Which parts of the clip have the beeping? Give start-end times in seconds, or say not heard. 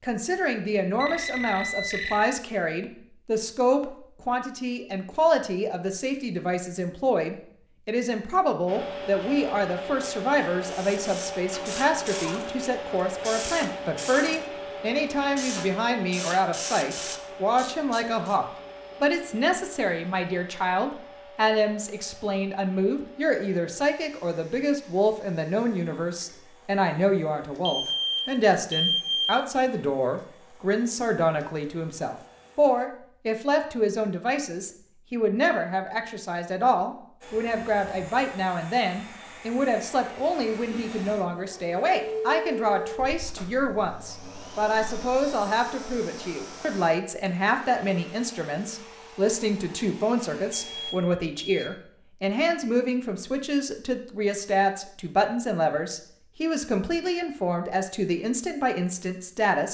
1.0-2.4, 27.6-29.4, 50.3-51.7.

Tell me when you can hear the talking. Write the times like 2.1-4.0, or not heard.
0.0-59.7.